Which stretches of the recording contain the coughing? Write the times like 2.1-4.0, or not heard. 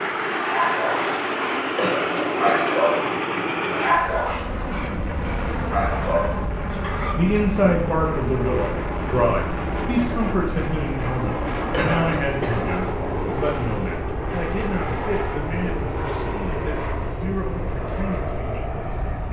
1.8-2.8, 11.7-12.6.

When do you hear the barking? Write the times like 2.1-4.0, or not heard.
0.3-7.2.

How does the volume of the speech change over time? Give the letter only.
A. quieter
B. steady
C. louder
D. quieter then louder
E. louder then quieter
A.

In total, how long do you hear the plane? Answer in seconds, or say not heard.
19 s.